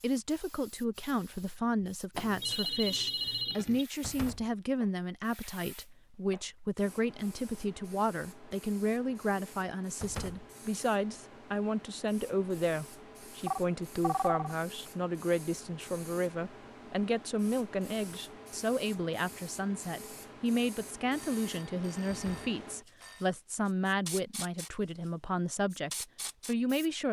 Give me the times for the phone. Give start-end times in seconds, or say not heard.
2.1-3.9, 13.4-14.6, 21.1-23.3.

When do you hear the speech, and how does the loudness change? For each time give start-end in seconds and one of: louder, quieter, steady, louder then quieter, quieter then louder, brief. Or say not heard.
0.0-27.0 steady.